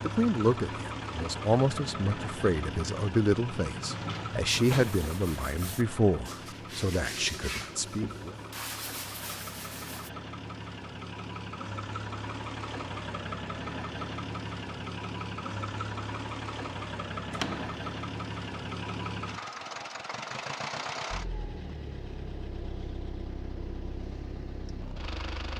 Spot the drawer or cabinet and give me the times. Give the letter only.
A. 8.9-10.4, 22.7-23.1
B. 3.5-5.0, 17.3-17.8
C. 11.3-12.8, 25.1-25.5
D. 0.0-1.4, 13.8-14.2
B.